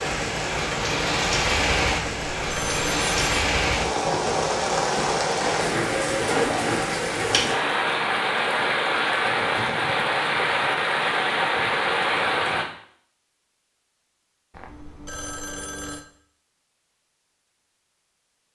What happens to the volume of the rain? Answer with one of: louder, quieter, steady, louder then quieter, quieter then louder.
steady.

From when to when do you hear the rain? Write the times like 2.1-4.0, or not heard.
0.0-12.7.